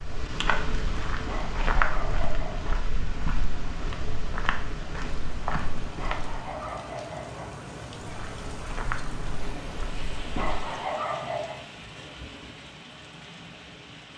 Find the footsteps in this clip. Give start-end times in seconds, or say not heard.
0.0-6.5, 8.0-10.6.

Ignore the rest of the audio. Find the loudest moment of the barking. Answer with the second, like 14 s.
11 s.